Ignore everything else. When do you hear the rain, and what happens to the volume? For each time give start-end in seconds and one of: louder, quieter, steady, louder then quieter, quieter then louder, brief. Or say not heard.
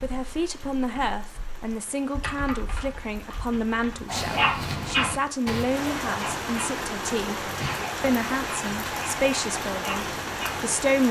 0.0-11.0 louder.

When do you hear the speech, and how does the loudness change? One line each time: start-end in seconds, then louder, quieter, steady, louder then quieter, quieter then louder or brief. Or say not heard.
0.0-11.0 steady.